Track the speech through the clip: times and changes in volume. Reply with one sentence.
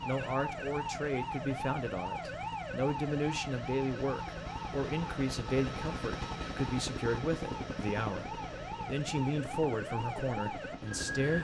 You can hear the speech from 0.1 to 11.4 s, at a steady volume.